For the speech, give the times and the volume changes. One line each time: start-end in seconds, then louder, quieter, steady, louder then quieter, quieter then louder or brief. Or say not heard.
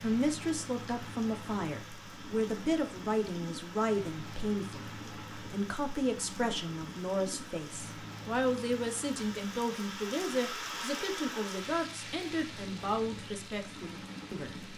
0.0-14.7 steady.